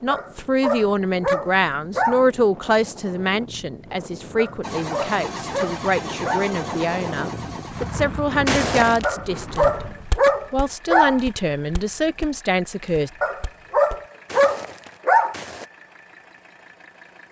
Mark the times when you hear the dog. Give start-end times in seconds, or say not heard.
0.1-2.2, 4.3-6.5, 9.0-11.2, 13.2-15.3.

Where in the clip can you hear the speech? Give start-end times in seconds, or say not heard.
0.0-9.8, 10.5-13.1.